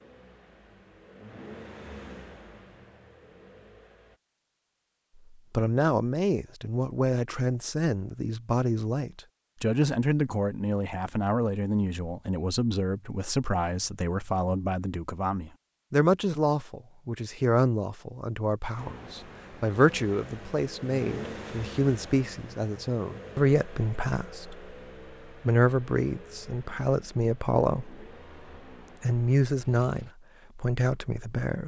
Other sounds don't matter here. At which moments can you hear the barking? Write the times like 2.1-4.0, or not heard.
not heard.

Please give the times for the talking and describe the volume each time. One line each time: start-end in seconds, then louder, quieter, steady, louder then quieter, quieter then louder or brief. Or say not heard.
5.5-24.6 steady
25.4-28.0 brief
29.0-31.6 brief.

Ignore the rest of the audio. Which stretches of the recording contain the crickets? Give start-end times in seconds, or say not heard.
not heard.